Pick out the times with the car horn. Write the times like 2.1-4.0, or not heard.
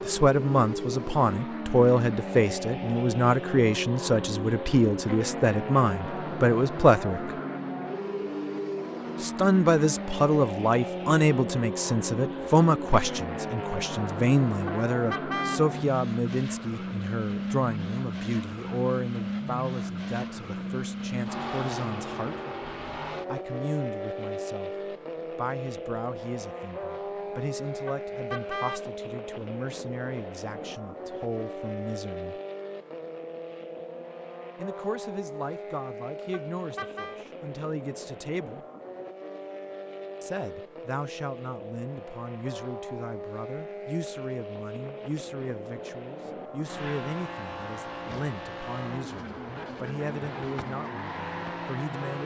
14.7-15.7, 27.9-28.9, 36.3-37.2.